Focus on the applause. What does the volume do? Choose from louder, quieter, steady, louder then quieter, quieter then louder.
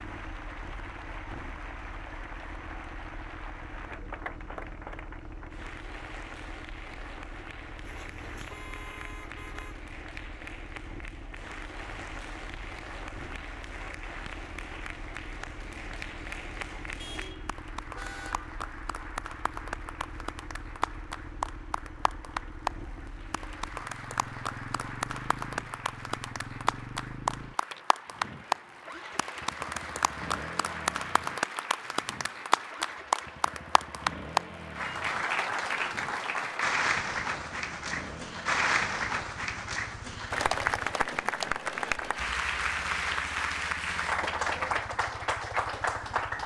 louder.